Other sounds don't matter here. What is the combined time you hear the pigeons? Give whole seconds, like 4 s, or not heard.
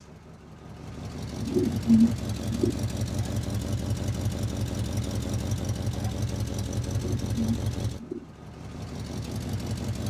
3 s.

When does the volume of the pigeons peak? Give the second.
2 s.